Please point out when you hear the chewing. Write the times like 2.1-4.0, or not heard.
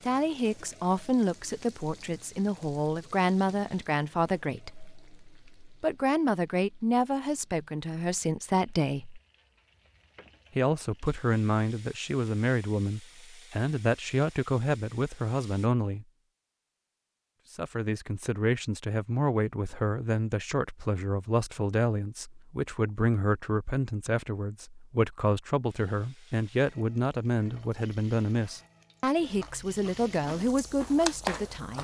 29.2-31.8.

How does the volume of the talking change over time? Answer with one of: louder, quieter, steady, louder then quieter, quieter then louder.
steady.